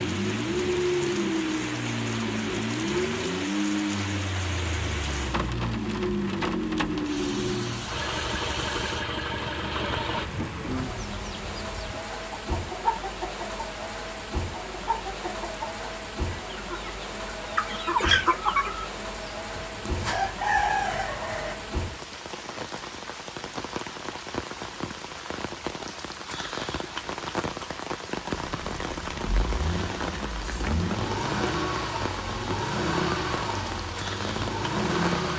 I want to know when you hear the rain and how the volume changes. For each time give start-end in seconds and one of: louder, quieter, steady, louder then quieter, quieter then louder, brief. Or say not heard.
0.0-35.3 steady.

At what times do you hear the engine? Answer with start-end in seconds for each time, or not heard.
0.0-10.2, 28.3-35.3.